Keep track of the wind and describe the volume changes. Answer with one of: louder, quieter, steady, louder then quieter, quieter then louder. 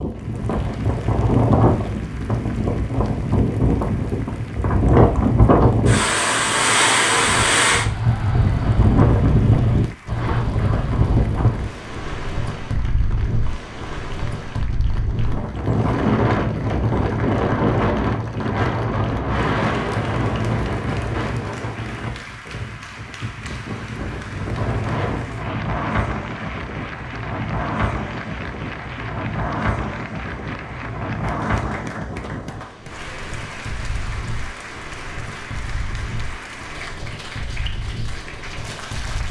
quieter.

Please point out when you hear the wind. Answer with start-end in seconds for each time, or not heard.
0.0-39.2.